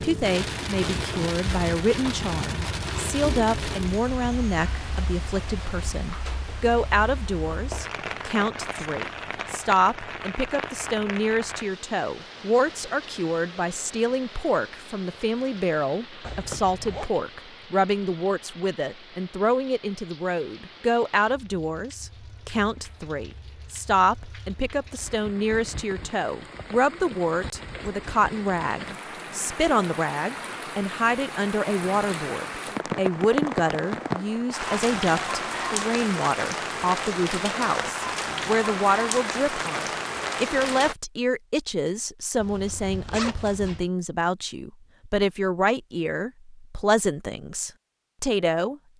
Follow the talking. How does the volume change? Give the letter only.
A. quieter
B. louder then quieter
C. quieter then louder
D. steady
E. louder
D.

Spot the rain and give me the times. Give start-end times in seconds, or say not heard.
0.0-41.0.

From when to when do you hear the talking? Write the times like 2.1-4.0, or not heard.
0.0-48.8.